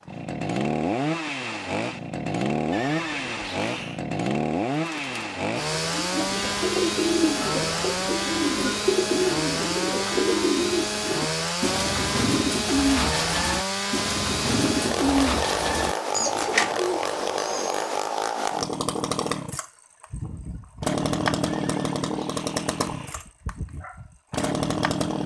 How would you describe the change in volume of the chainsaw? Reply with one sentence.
The volume of the chainsaw stays about the same.